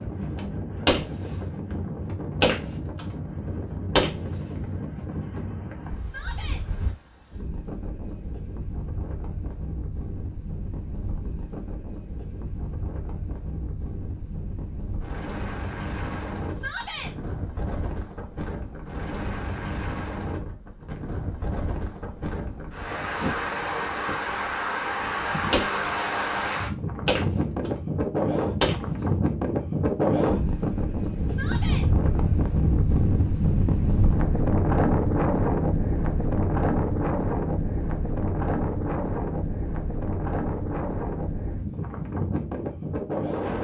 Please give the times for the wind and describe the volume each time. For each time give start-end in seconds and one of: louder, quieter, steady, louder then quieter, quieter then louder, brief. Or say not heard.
0.0-43.6 louder.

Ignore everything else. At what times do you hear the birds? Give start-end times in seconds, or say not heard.
not heard.